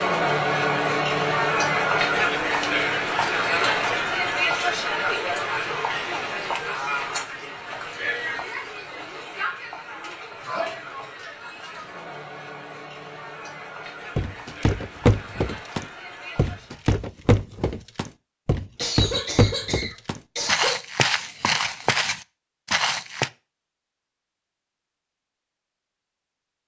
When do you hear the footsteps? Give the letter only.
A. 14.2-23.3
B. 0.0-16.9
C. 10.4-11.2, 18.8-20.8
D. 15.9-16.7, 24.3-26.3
A.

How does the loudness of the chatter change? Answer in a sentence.
The loudness of the chatter goes down.